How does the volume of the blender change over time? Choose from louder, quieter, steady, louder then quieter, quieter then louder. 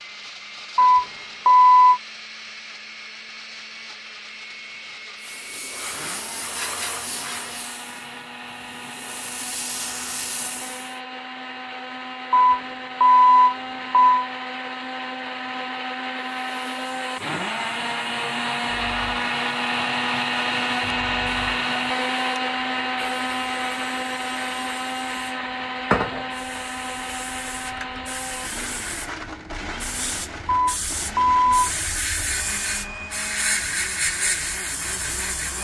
louder then quieter.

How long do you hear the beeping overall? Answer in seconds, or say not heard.
4 s.